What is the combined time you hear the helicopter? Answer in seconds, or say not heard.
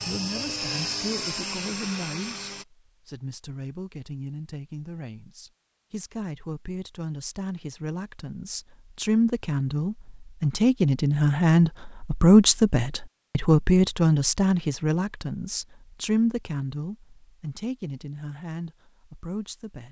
3 s.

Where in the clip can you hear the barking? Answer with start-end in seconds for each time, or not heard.
not heard.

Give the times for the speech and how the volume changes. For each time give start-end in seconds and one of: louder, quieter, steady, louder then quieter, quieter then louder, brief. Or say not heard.
0.1-19.8 louder then quieter.